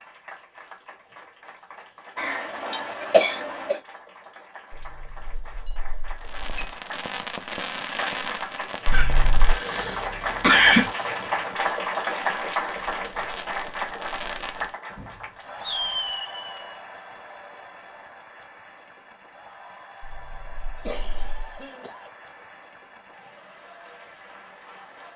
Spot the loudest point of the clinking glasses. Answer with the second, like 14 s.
9 s.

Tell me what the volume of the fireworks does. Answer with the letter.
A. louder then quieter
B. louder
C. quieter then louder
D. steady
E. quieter
C.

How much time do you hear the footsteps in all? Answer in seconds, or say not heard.
not heard.